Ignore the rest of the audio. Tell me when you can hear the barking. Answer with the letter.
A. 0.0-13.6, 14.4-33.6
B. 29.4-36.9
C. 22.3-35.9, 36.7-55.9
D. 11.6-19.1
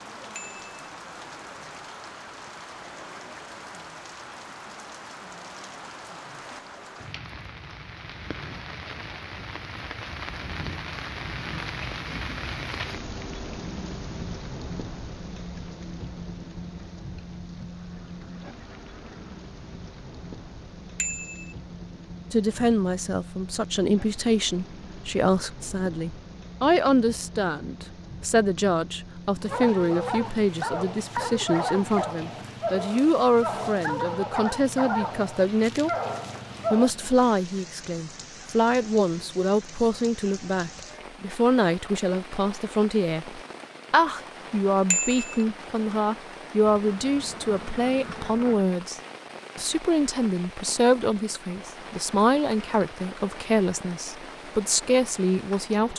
B.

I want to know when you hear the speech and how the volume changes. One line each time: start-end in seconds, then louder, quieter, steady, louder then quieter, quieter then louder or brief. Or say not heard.
22.3-35.9 steady
36.7-55.9 steady.